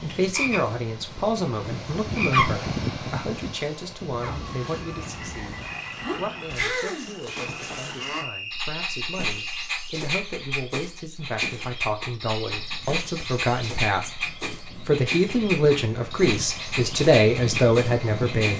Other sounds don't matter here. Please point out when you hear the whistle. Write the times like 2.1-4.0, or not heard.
8.0-9.7.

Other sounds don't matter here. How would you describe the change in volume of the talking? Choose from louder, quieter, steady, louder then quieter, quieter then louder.
quieter then louder.